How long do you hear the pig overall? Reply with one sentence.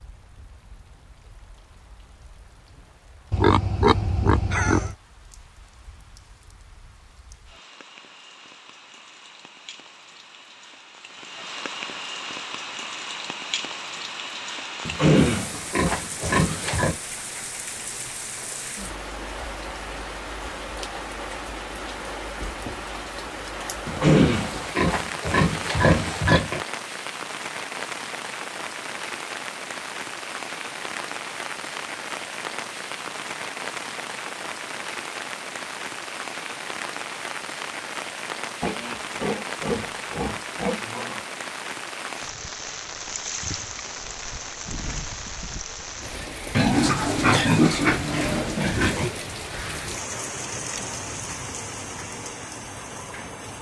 The pig can be heard for 12 seconds in total.